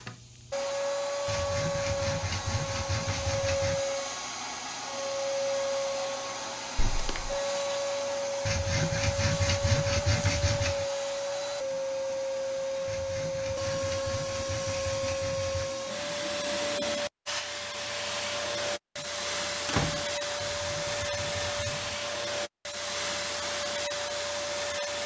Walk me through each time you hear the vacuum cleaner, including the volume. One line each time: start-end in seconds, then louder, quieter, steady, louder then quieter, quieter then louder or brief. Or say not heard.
0.0-25.0 steady.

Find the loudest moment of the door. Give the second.
20 s.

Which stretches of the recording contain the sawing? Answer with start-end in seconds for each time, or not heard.
1.2-3.8, 8.4-10.8, 12.8-15.8, 20.4-21.9.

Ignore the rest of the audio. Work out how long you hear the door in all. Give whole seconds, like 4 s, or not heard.
2 s.